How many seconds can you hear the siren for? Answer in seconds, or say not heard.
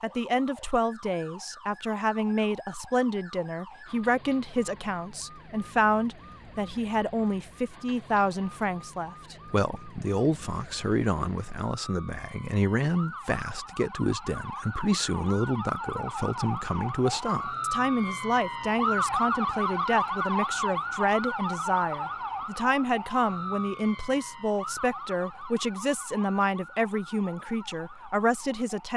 29 s.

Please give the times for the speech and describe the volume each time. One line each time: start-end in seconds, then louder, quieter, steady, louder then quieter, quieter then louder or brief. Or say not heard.
0.0-28.9 steady.